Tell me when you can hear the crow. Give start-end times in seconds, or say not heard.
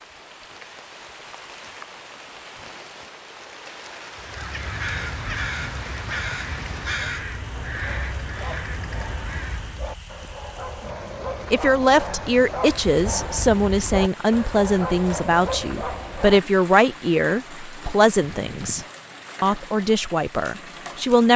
4.2-9.9.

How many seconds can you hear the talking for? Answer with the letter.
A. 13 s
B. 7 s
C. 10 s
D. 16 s
C.